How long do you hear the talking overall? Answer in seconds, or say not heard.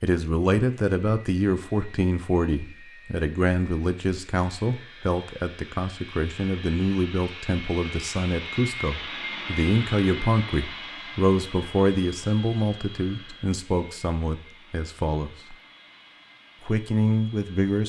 17 s.